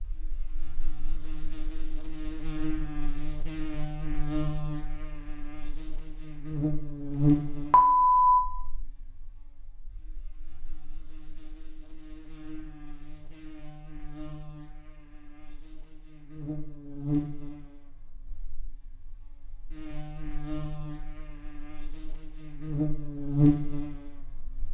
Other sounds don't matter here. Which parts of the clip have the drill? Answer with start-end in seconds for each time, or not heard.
not heard.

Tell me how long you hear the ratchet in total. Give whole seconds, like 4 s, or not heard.
not heard.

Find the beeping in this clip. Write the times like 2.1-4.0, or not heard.
7.2-8.4.